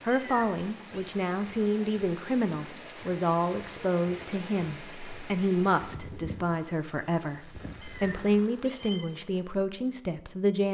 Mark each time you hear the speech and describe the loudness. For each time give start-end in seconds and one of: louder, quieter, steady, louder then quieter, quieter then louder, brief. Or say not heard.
0.0-10.7 steady.